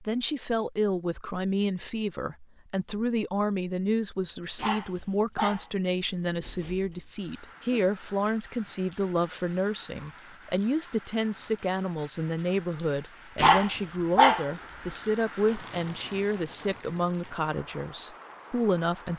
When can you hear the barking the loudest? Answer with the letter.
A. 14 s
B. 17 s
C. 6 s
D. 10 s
A.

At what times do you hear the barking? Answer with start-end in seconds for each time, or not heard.
4.5-5.7, 6.2-7.0, 13.3-14.4.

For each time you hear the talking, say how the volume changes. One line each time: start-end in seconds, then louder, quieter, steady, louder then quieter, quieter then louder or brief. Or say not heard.
0.0-19.1 steady.